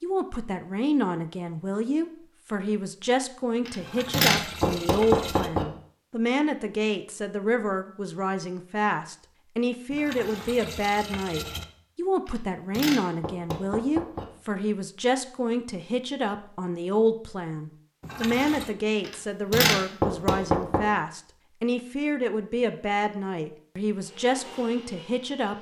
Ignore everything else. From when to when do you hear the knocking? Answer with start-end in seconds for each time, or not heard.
3.6-5.7, 12.2-14.2, 19.0-20.8.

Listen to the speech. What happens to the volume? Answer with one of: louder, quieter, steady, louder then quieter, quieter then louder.
steady.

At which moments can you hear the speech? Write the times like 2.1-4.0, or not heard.
0.0-25.5.